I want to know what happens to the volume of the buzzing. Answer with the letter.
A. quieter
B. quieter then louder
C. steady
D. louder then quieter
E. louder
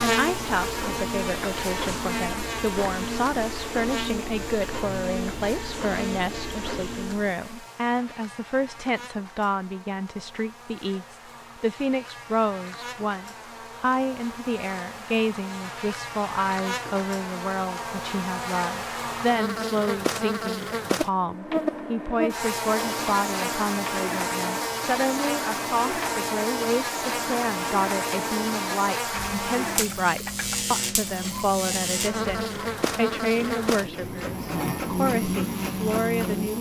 B.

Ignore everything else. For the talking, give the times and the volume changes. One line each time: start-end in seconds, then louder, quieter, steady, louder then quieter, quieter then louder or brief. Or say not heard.
0.0-36.5 steady.